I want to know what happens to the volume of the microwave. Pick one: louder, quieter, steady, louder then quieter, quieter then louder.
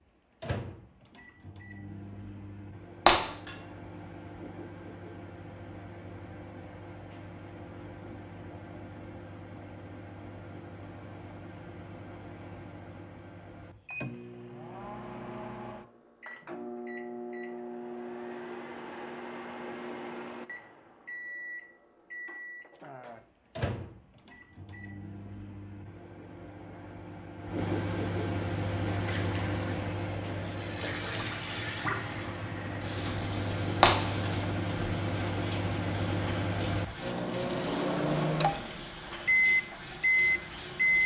louder.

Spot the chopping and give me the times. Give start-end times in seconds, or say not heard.
not heard.